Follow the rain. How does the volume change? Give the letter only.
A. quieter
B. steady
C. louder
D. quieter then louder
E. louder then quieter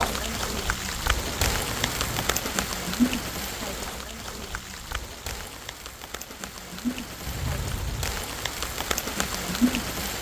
D.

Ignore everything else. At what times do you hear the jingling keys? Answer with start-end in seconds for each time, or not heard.
1.2-2.5, 7.2-8.1.